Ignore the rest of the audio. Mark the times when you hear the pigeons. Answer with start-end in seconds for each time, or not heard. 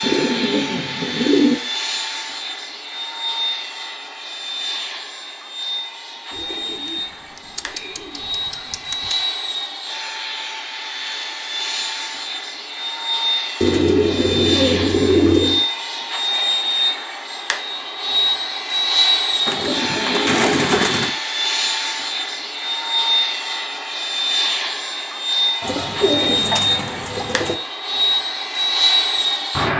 0.0-1.6, 6.3-9.2, 13.6-15.7, 19.4-21.1, 25.6-27.6.